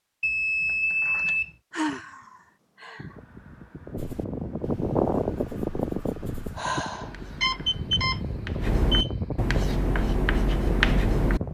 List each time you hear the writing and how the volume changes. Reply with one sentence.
The writing can be heard from 4.0 to 11.4 s, getting louder.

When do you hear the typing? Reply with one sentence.
You can't hear the typing here.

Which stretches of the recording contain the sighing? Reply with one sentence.
The sighing can be heard from 1.7 to 3.1 s and from 6.5 to 7.2 s.